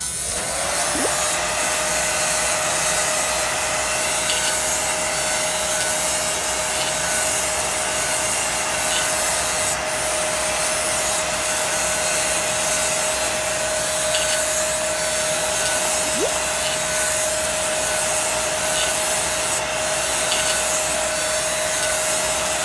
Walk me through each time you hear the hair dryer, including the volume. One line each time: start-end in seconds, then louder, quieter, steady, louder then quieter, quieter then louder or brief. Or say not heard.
0.0-22.6 steady.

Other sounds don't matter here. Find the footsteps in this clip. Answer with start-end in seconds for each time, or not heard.
not heard.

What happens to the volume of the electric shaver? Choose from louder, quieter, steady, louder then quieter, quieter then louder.
steady.